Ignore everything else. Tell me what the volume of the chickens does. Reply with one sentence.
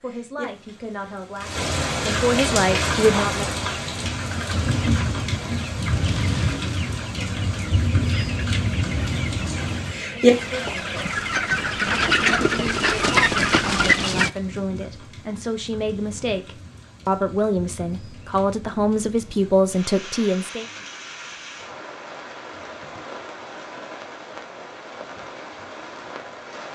The volume of the chickens goes up.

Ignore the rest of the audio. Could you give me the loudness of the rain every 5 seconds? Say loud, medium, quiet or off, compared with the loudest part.
loud, loud, loud, quiet, quiet, quiet.